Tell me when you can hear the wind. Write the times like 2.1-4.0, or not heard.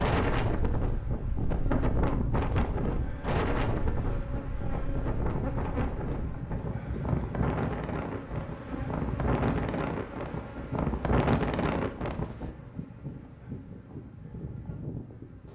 0.0-12.5.